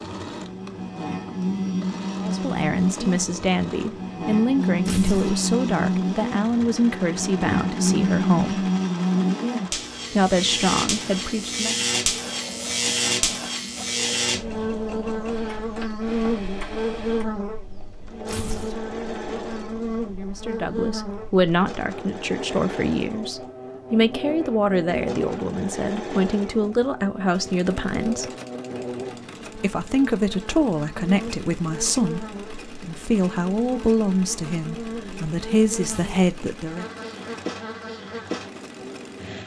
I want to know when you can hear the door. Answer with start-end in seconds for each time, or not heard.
not heard.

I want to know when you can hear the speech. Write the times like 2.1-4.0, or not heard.
2.1-8.7, 10.1-11.8, 20.2-28.3, 29.6-36.9.